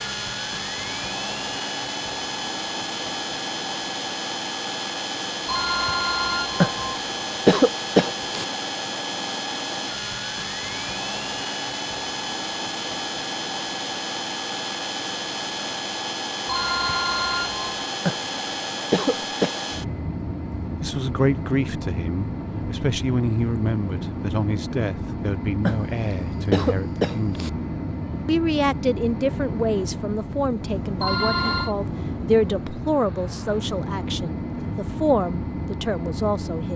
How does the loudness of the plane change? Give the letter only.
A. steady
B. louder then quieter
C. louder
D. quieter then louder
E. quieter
A.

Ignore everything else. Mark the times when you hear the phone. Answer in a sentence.
You can hear the phone from 5.5 to 6.8 s, from 16.4 to 17.8 s and from 31.0 to 31.8 s.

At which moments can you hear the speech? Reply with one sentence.
You can hear the speech from 20.8 to 27.5 s and from 28.2 to 36.7 s.